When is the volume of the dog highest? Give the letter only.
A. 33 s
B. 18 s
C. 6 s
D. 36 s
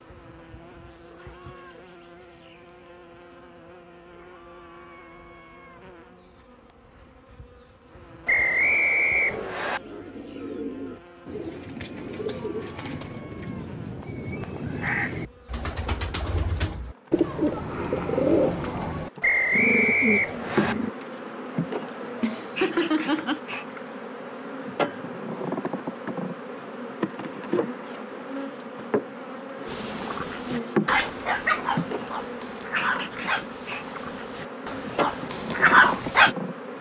D.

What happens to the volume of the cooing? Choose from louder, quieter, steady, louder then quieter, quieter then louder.
louder.